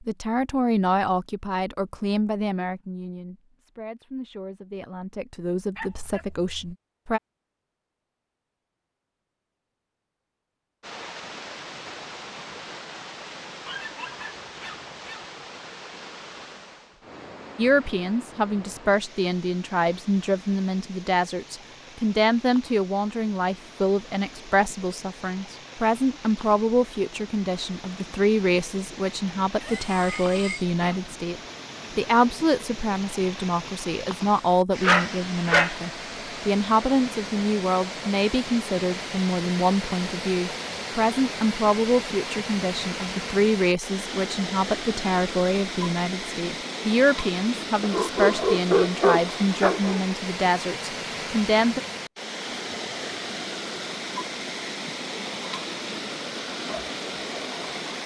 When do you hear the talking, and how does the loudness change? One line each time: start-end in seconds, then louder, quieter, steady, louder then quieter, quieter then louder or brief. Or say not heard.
0.1-7.2 quieter then louder
17.6-51.8 steady.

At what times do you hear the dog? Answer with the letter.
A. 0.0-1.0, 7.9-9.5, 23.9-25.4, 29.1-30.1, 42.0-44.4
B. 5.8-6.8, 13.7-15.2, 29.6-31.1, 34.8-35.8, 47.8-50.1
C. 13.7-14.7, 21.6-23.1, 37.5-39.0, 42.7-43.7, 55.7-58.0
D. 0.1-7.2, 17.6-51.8
B.